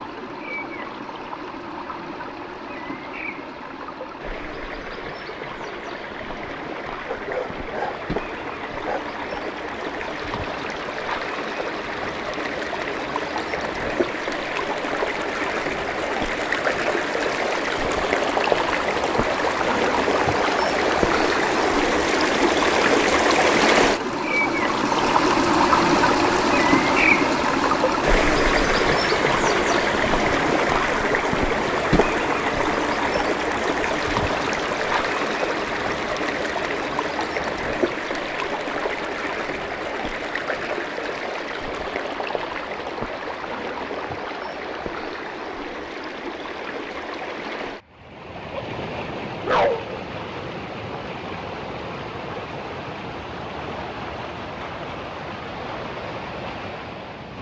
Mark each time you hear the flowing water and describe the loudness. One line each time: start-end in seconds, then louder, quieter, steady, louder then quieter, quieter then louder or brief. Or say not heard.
0.0-57.3 louder then quieter.